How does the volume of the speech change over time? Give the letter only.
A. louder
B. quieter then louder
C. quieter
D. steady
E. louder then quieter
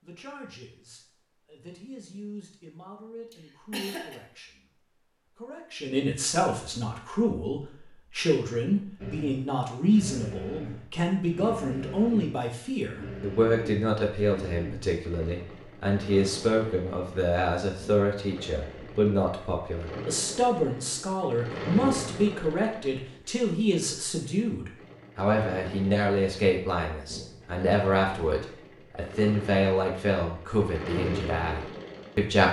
A.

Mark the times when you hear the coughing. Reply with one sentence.
You can hear the coughing from 3.3 to 4.2 s.